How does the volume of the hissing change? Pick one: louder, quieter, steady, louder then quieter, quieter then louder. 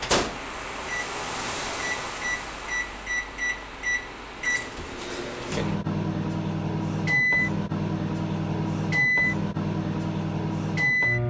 quieter.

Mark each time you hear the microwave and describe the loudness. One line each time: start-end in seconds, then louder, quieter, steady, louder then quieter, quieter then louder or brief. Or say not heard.
0.0-11.2 louder.